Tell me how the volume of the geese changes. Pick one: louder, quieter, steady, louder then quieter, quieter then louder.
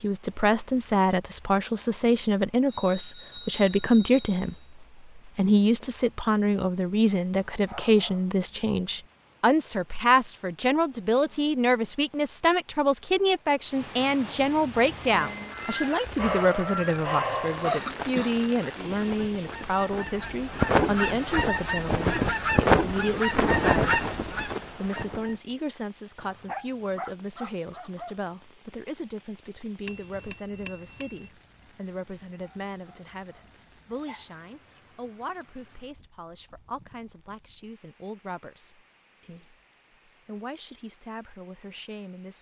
louder.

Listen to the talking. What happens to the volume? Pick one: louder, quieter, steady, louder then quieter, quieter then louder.
quieter.